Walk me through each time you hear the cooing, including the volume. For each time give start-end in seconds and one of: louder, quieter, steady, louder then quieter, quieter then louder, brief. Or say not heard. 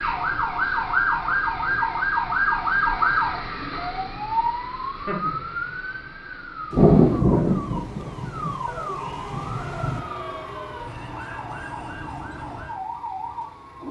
not heard.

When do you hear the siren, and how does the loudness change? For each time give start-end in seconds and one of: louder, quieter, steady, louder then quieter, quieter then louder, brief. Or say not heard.
0.0-13.7 quieter.